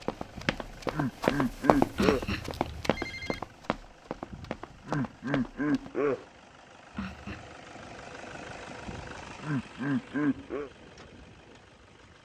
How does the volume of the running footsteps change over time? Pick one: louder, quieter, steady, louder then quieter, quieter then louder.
quieter.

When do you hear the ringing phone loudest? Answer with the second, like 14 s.
2 s.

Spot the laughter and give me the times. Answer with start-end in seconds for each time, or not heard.
0.3-2.2, 4.3-6.2, 8.8-10.7.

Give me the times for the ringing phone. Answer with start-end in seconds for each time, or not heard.
1.9-3.4, 7.0-7.5.